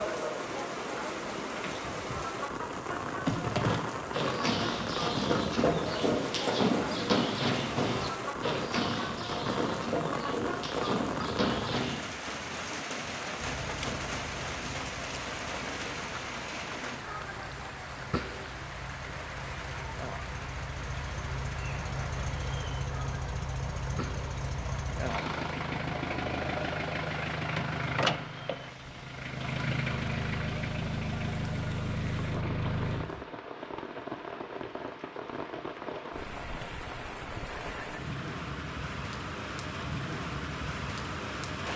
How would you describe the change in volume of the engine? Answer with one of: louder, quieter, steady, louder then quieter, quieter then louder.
louder.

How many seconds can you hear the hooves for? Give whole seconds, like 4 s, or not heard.
9 s.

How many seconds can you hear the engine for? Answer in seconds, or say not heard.
20 s.